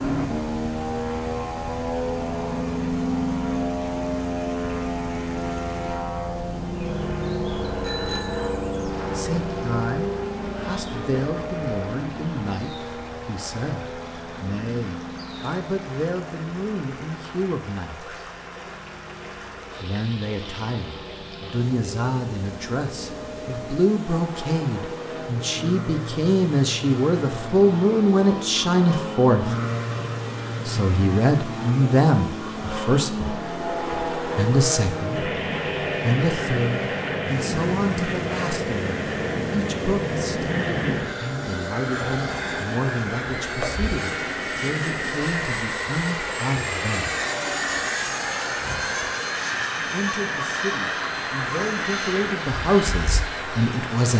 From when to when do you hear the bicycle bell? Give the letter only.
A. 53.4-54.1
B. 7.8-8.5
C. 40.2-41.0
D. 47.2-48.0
B.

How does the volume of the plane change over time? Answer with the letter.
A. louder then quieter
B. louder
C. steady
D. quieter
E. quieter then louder
E.